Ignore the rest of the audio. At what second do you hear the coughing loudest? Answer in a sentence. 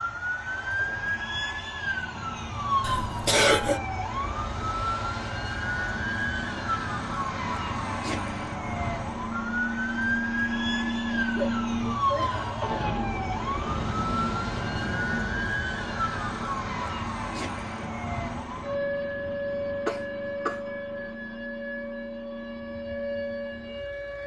The volume of the coughing peaks at 3 seconds.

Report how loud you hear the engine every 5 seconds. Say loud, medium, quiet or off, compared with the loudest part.
quiet, medium, loud, medium, medium.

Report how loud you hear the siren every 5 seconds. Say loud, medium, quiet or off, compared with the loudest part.
loud, loud, loud, loud, medium.